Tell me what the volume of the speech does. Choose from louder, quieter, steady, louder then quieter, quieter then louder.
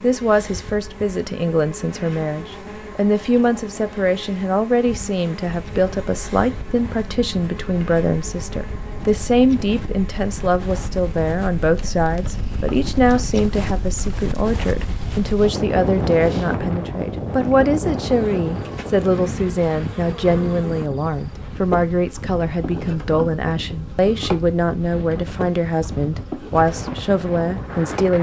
steady.